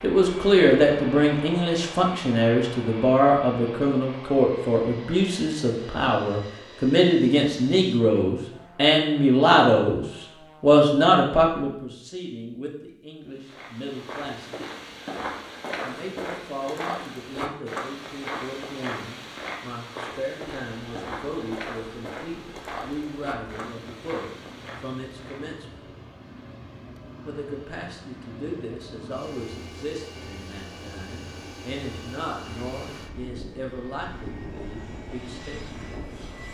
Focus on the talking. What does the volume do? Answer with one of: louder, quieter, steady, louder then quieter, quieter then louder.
quieter.